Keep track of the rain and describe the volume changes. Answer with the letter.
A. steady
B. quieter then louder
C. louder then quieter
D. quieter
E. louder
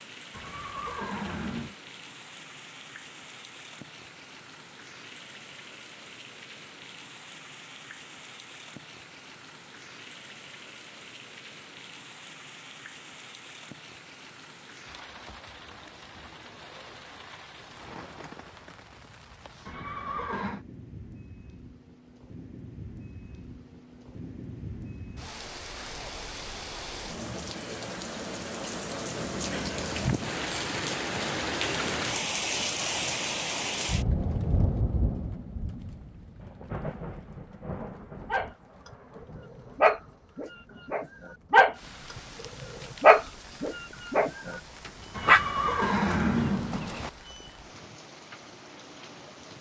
C.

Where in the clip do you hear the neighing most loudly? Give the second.
46 s.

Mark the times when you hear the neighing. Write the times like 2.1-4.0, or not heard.
0.3-1.8, 19.6-20.6, 45.1-47.1.